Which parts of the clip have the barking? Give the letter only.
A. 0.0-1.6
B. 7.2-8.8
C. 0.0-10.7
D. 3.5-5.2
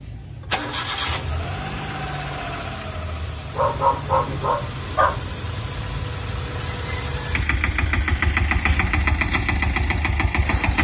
D.